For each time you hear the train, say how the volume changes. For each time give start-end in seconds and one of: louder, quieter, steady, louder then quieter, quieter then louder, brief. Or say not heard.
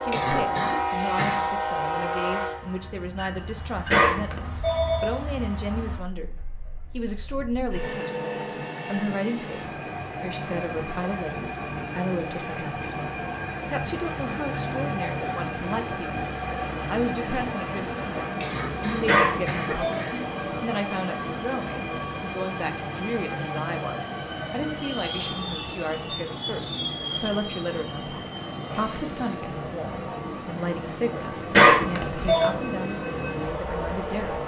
0.0-34.4 steady.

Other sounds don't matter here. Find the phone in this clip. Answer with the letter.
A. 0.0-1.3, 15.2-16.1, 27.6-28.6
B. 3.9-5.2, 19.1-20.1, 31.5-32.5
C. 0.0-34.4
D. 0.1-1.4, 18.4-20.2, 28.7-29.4
B.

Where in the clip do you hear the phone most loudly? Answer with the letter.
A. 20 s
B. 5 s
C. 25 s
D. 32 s
D.